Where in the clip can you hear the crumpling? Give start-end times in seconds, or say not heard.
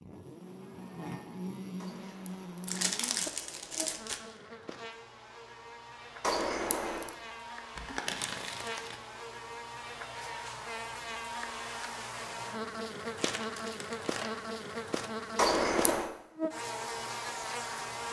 2.6-4.2, 7.8-9.0, 13.2-14.4.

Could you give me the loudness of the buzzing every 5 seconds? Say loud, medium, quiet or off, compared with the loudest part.
medium, medium, loud, loud.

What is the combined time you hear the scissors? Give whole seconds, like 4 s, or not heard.
4 s.